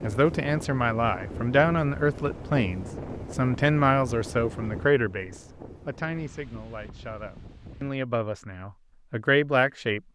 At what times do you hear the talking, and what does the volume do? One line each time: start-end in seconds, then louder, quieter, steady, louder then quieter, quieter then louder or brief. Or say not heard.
0.0-10.1 quieter then louder.